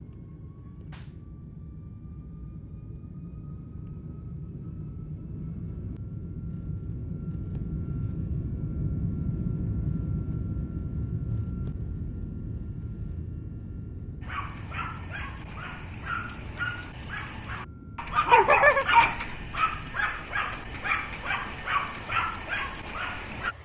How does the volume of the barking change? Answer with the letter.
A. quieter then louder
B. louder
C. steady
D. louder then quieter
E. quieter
D.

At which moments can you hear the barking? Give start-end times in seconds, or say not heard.
14.2-23.5.